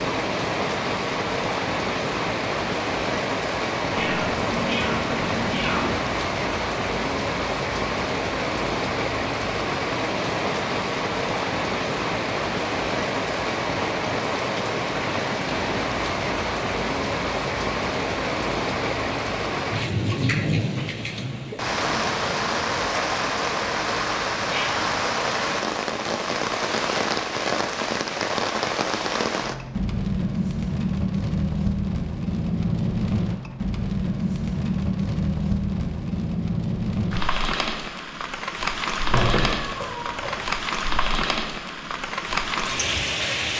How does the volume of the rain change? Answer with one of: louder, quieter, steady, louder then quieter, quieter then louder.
steady.